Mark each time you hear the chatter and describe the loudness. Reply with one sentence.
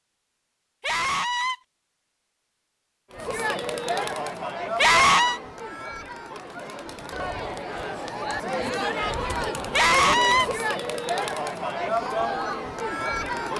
The chatter can be heard from 3.1 to 13.5 s, getting quieter then louder.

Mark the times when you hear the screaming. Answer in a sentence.
You can hear the screaming from 0.8 to 1.6 s, from 4.8 to 5.4 s and from 9.7 to 10.4 s.